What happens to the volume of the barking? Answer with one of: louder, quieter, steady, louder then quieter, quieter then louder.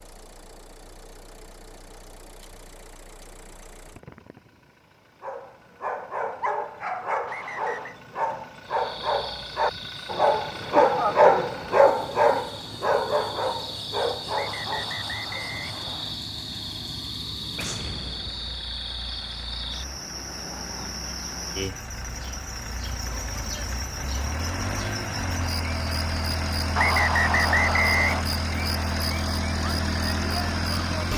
louder then quieter.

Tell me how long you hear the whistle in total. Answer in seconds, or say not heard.
4 s.